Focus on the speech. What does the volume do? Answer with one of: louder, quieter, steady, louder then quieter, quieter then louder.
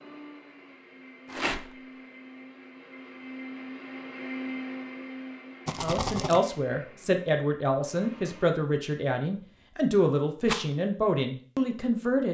steady.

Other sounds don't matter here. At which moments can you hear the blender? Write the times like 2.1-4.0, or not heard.
0.0-8.6.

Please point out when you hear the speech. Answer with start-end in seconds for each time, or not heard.
5.8-12.2.